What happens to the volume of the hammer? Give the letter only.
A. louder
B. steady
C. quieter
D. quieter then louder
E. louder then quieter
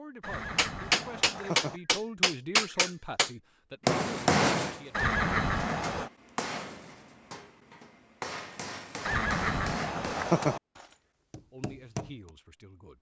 C.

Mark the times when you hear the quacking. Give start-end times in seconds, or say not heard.
not heard.